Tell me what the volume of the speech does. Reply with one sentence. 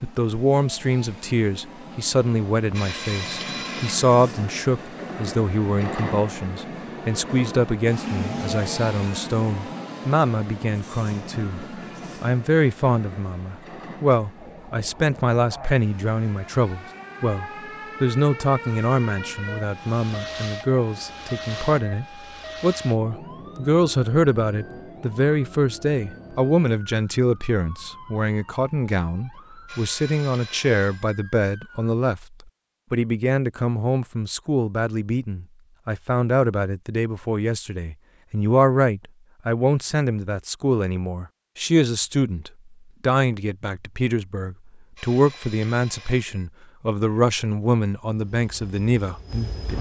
The loudness of the speech stays about the same.